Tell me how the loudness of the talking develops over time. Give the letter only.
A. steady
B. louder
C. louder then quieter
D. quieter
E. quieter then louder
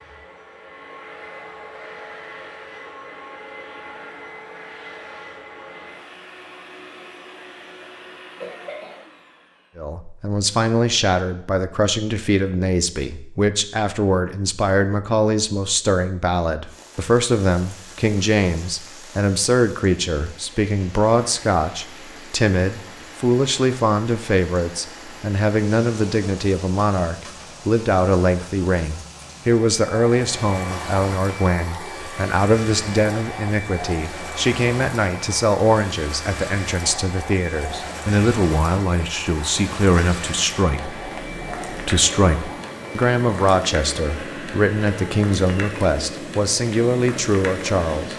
A.